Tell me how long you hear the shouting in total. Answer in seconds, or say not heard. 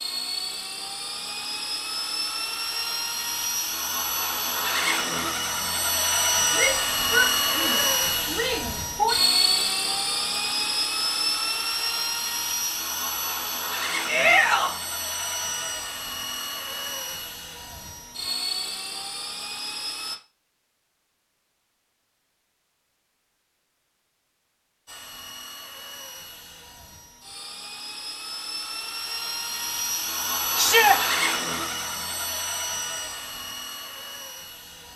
4 s.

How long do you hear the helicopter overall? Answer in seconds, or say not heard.
30 s.